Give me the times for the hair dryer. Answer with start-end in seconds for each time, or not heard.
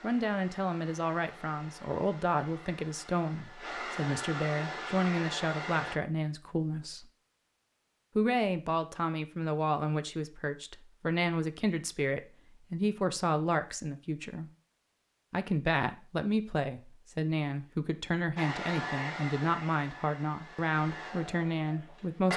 0.0-6.0, 18.4-22.3.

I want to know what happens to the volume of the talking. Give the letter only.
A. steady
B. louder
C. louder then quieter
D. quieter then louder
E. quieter
A.